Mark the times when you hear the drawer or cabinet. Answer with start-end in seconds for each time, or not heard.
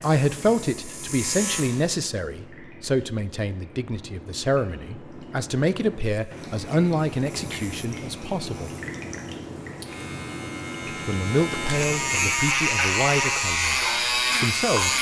not heard.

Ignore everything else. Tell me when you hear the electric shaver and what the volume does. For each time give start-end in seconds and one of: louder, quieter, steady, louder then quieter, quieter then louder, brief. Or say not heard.
0.0-2.0 brief
6.0-14.9 louder.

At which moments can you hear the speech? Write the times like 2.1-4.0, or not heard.
0.0-8.7, 10.8-13.8, 14.4-14.9.